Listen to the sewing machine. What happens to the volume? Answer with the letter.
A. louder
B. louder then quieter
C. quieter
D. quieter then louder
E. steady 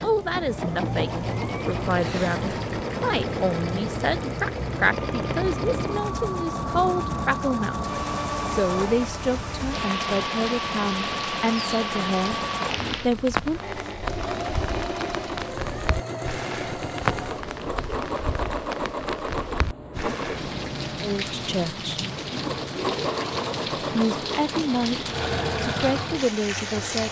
E.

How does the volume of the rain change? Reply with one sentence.
The loudness of the rain stays about the same.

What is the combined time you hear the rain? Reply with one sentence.
The rain can be heard for 27 seconds in total.